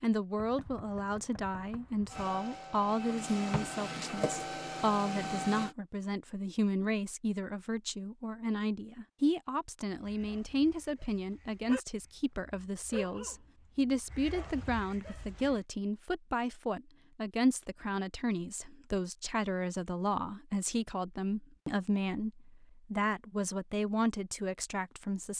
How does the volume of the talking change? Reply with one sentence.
The loudness of the talking stays about the same.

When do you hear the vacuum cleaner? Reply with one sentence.
You can hear the vacuum cleaner from 2.1 to 5.8 s.